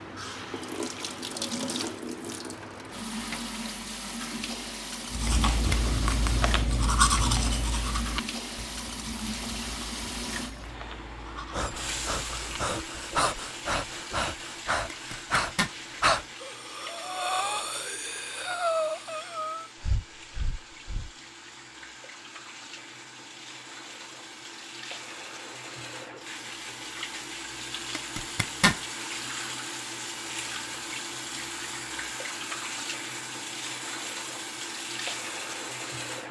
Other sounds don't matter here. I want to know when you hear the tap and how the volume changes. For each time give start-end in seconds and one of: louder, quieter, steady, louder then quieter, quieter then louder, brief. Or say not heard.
0.0-36.2 quieter then louder.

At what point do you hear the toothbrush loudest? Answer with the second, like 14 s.
7 s.